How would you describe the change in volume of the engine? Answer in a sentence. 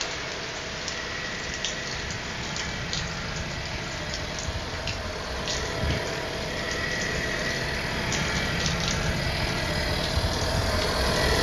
The volume of the engine goes up.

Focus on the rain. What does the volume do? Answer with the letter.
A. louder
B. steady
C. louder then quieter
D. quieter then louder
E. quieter
B.